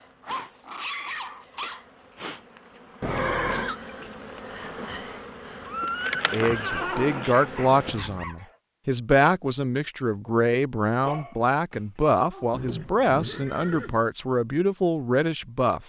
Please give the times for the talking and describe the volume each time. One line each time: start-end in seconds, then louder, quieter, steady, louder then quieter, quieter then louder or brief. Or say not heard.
6.3-15.8 steady.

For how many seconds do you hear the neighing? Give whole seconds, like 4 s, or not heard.
4 s.